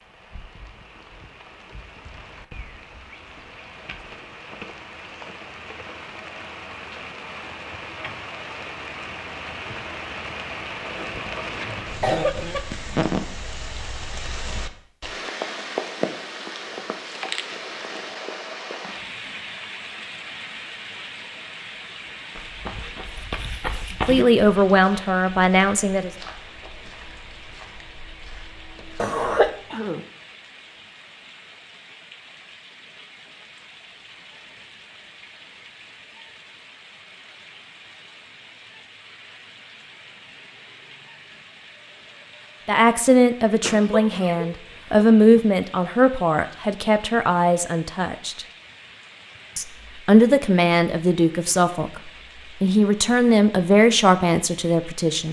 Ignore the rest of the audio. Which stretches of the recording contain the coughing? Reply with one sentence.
You can hear the coughing from 10.9 to 12.6 s, from 29.0 to 30.0 s and from 43.6 to 45.4 s.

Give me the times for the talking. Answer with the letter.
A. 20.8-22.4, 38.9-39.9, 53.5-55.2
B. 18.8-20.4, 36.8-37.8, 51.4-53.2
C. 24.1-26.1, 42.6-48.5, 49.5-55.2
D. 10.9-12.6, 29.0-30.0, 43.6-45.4
C.